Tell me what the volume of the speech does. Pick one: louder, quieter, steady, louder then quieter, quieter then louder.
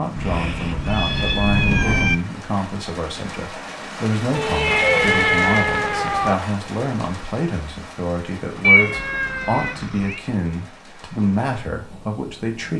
steady.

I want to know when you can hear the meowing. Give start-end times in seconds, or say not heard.
0.1-2.1, 4.3-6.3, 8.6-10.2.